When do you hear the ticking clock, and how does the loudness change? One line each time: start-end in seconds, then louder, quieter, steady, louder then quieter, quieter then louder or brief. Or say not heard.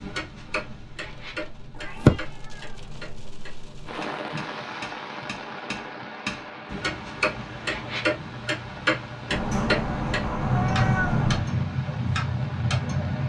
0.0-13.2 louder.